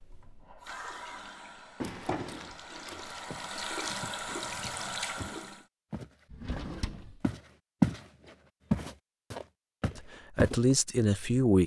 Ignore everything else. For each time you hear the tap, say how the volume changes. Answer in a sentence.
The tap can be heard from 0.0 to 5.7 s, getting quieter then louder.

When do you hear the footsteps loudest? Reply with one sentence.
The loudest moment of the footsteps is at 8 seconds.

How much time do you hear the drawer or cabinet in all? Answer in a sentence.
The drawer or cabinet can be heard for 2 seconds in total.